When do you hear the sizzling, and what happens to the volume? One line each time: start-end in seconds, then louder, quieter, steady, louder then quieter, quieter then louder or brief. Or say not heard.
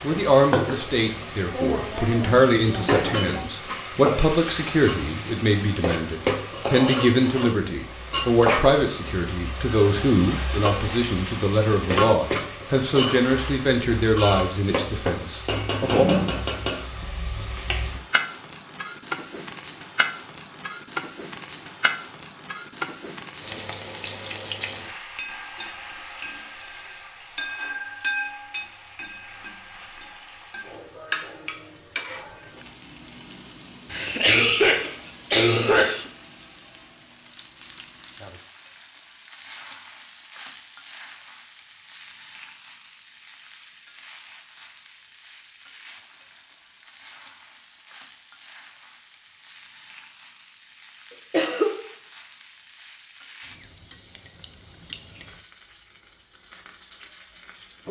0.0-57.8 quieter.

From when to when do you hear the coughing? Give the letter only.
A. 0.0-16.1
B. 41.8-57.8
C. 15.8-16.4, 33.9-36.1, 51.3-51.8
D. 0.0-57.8
C.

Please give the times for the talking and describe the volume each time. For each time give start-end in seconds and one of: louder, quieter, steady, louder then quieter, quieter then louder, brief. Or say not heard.
0.0-16.1 steady.